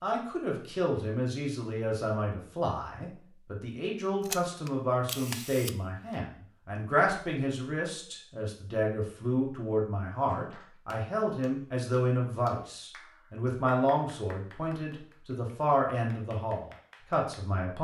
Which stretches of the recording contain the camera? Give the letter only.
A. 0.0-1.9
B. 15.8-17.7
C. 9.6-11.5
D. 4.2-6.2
D.